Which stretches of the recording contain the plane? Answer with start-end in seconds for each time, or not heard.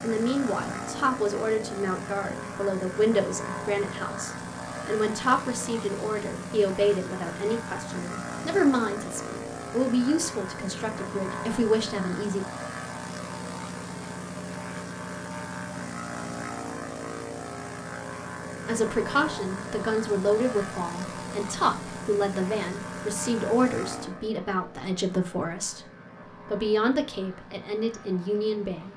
0.0-28.9.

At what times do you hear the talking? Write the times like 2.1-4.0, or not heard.
0.0-12.4, 18.6-25.9, 26.4-28.9.